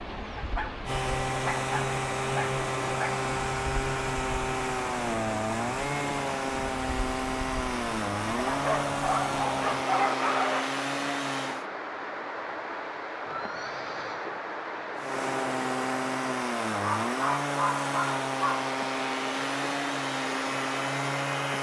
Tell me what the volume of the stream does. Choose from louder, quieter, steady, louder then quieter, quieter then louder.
steady.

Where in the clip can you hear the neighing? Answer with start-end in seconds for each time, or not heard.
13.2-14.3.